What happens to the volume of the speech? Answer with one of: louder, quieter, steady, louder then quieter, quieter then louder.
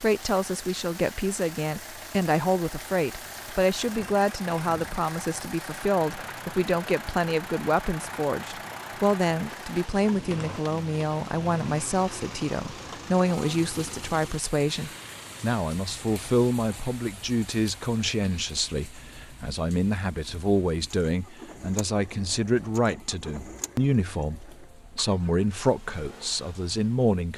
steady.